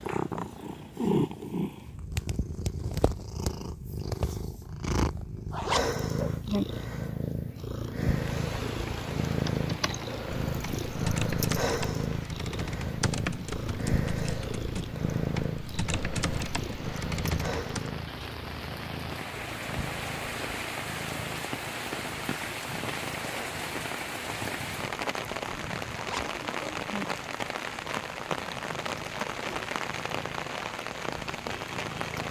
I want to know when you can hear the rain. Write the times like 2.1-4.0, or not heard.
8.0-32.2.